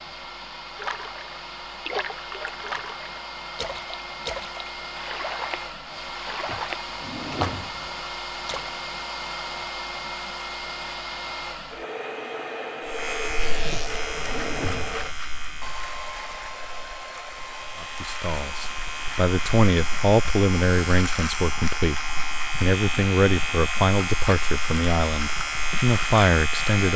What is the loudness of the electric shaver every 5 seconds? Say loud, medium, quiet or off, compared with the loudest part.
off, off, medium, medium, loud, loud.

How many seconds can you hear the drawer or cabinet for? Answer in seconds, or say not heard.
3 s.